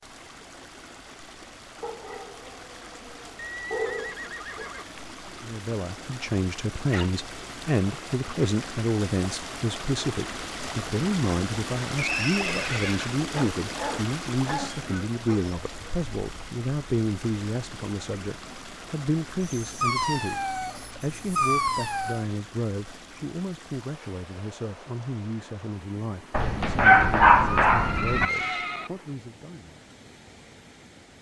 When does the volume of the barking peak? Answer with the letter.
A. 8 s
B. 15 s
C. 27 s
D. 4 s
C.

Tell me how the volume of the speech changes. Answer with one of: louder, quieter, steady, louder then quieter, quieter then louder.
quieter.